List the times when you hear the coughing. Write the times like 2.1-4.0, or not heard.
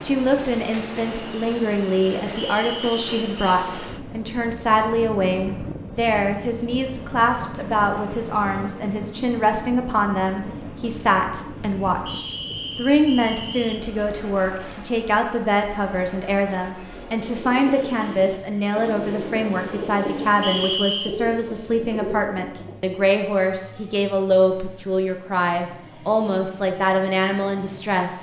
not heard.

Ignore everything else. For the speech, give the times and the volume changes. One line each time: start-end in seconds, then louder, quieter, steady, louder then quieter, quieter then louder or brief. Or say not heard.
0.0-28.1 steady.